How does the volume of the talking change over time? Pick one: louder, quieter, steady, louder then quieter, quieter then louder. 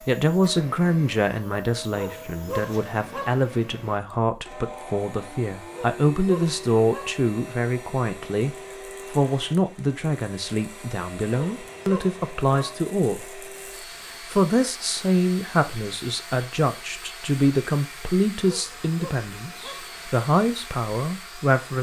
steady.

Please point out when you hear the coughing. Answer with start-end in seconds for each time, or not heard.
not heard.